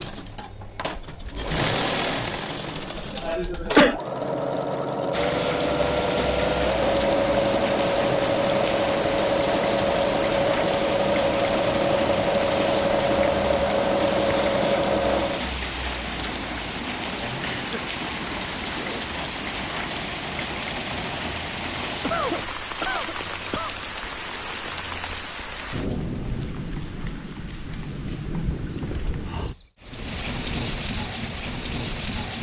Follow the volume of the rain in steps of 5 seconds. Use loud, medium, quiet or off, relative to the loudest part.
off, loud, loud, loud, loud, loud, loud.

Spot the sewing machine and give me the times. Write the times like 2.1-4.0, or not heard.
0.0-15.4.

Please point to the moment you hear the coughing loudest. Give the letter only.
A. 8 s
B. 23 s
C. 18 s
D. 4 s
D.